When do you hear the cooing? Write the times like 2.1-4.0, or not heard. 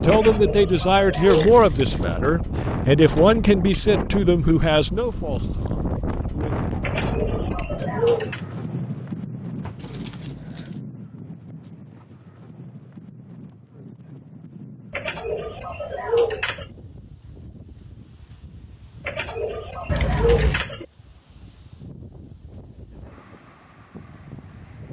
0.1-1.6, 6.8-8.4, 14.9-16.7, 19.1-20.9.